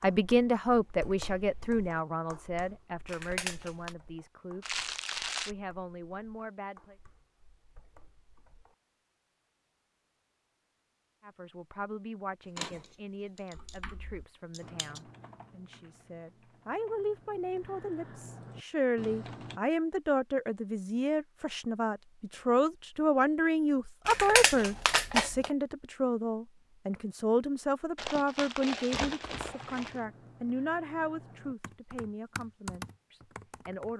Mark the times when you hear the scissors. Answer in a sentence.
You can hear the scissors from 3.0 to 4.0 s, from 12.6 to 13.8 s, from 14.5 to 15.0 s and from 24.1 to 25.5 s.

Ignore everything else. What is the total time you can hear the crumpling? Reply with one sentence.
You can hear the crumpling for 3 seconds altogether.